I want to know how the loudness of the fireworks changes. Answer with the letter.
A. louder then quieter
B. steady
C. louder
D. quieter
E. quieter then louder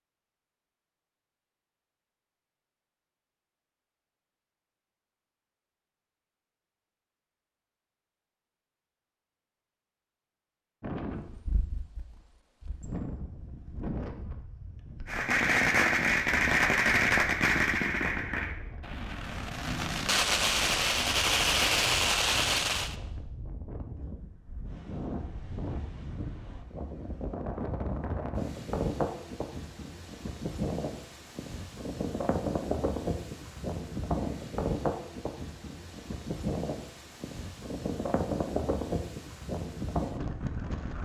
E.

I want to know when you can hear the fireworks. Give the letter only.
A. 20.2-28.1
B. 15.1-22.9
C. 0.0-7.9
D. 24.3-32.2
B.